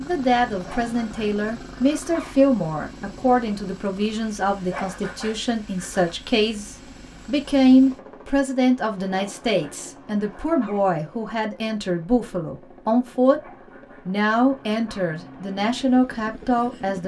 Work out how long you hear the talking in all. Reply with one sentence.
You can hear the talking for 16 seconds altogether.